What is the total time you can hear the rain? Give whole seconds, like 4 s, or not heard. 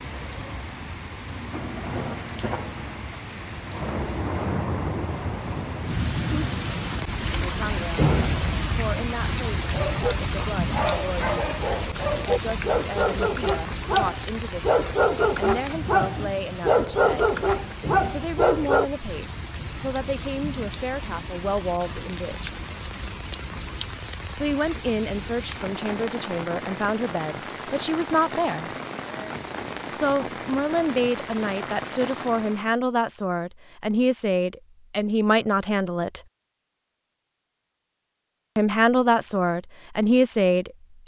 33 s.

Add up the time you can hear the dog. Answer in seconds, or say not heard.
9 s.